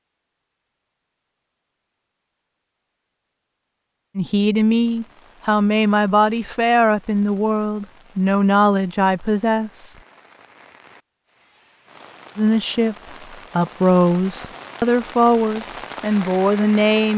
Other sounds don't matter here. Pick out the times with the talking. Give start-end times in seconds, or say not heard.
4.2-9.9, 12.3-12.9, 13.6-17.1.